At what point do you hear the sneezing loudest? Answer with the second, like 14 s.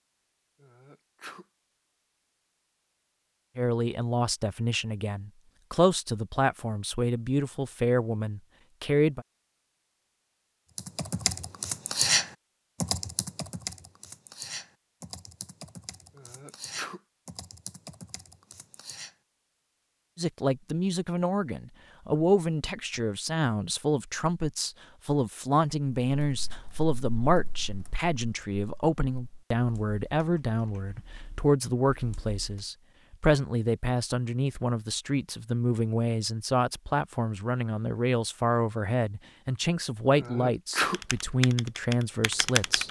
41 s.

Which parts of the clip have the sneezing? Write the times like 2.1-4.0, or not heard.
0.6-1.4, 16.1-17.0, 40.1-41.0.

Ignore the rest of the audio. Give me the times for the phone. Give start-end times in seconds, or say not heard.
not heard.